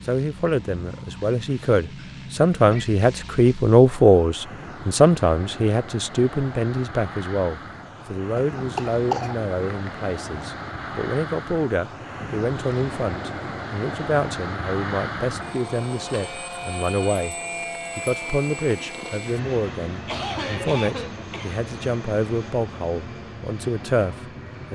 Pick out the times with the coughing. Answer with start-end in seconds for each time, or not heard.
1.9-2.9, 8.3-9.9, 20.1-21.6.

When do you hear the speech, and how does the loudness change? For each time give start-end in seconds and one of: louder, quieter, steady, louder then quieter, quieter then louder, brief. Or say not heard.
0.1-17.4 quieter
17.9-24.7 steady.